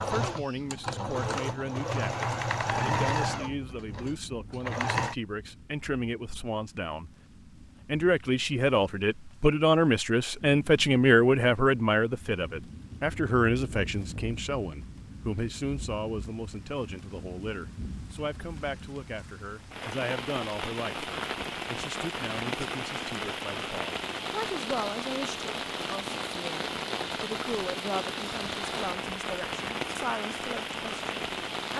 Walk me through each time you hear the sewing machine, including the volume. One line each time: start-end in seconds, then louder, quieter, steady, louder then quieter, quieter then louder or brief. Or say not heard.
0.0-5.2 louder then quieter.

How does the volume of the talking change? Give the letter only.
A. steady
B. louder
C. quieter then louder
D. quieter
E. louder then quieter
E.